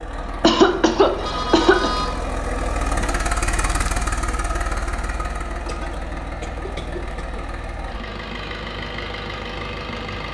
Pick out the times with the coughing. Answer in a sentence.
You can hear the coughing from 0.4 to 1.9 s and from 5.7 to 7.5 s.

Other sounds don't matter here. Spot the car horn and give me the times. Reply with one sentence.
The car horn can be heard from 1.2 to 2.2 s.